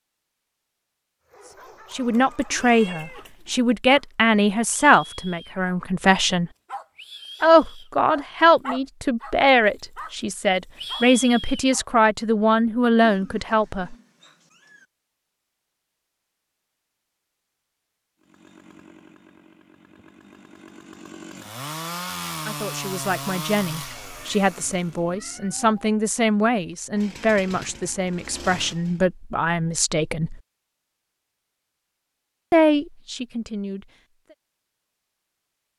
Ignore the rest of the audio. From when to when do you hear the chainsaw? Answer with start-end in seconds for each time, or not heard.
18.2-25.1, 26.9-29.1.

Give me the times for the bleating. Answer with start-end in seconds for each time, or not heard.
not heard.